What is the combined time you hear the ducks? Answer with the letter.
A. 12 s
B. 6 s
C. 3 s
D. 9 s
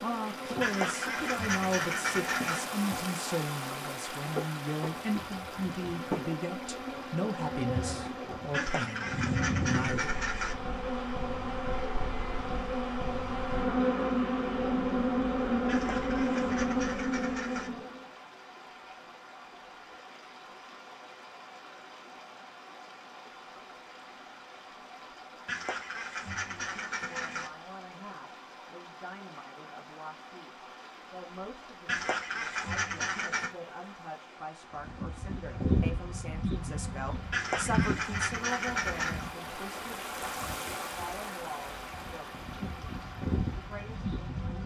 A.